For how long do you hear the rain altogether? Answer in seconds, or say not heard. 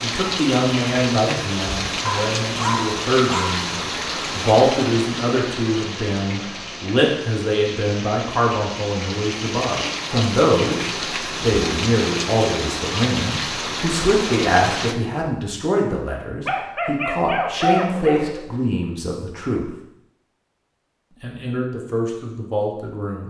15 s.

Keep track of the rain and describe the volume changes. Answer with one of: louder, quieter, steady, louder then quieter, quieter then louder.
quieter then louder.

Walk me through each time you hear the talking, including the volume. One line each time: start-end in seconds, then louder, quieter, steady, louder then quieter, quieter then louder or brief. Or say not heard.
0.0-19.7 steady
21.2-23.2 brief.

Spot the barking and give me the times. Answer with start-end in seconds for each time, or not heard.
2.0-3.7, 16.4-18.4.